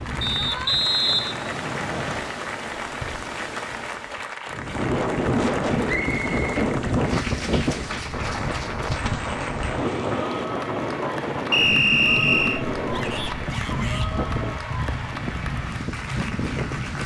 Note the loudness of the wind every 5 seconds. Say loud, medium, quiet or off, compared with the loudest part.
medium, loud, loud, medium.